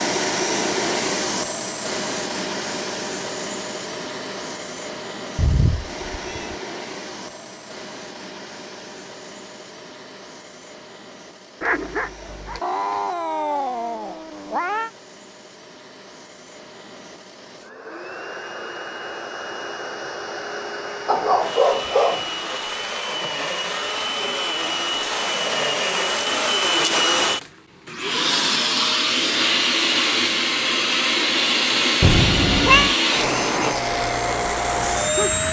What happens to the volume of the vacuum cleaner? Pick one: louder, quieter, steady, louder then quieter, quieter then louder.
quieter then louder.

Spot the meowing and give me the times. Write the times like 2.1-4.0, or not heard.
5.3-6.5, 12.6-14.9, 32.0-33.0.